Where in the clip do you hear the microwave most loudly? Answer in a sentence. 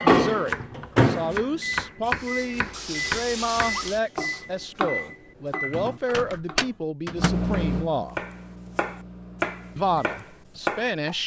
The volume of the microwave peaks at 1 second.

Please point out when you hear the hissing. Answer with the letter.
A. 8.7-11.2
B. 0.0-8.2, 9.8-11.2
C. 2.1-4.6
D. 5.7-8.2
C.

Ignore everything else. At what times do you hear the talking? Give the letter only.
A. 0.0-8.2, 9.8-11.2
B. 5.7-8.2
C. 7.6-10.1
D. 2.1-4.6
A.